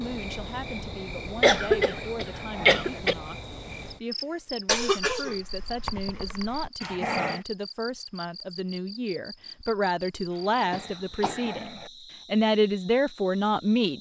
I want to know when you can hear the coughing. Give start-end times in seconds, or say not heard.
1.4-3.1, 4.7-6.7, 10.7-11.5.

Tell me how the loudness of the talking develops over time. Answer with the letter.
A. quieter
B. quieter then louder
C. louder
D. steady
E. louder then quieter
C.